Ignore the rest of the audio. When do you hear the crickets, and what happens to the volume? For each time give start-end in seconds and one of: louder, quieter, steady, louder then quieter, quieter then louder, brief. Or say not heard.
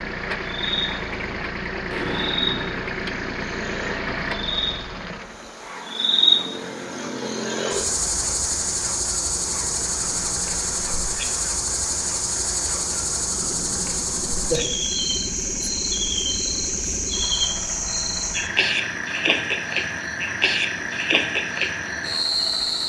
0.0-22.8 louder.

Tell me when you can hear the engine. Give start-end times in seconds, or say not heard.
0.0-22.8.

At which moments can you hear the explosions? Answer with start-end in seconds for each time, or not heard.
1.9-2.8.